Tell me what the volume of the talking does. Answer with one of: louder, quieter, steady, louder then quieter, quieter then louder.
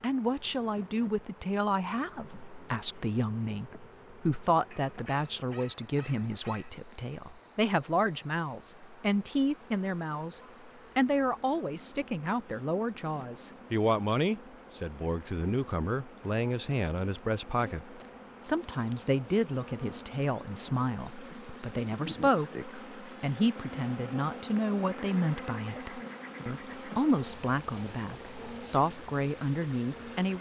steady.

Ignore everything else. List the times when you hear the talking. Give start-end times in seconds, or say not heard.
0.0-30.3.